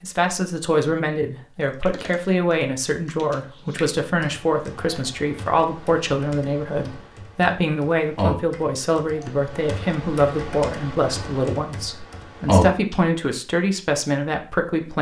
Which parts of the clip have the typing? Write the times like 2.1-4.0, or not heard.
1.6-12.9.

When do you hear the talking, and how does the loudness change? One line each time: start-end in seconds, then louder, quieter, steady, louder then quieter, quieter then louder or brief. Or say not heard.
0.0-14.9 steady.